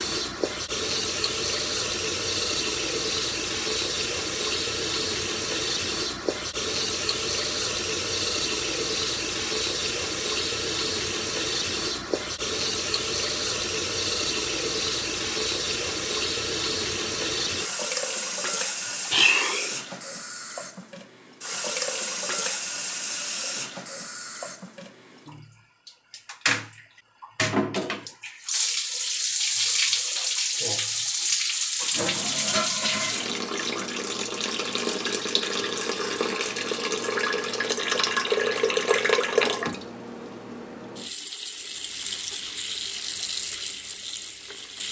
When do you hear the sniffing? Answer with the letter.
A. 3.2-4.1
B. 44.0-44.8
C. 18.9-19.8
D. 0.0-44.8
C.